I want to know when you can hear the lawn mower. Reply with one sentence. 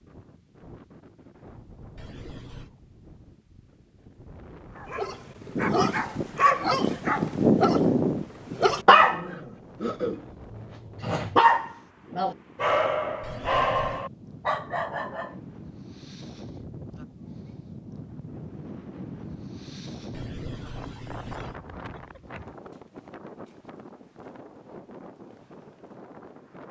The lawn mower can't be heard in this clip.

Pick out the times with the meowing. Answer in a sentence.
You can hear the meowing from 1.9 to 2.7 s, from 13.2 to 14.1 s and from 20.1 to 21.6 s.